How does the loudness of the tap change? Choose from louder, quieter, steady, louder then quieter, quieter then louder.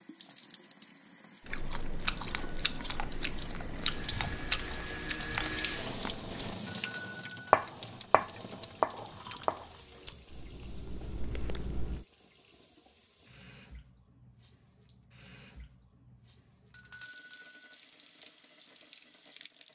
louder then quieter.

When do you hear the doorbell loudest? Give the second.
7 s.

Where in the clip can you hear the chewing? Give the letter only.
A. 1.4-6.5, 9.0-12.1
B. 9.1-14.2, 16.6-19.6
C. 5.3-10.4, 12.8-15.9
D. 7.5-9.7
A.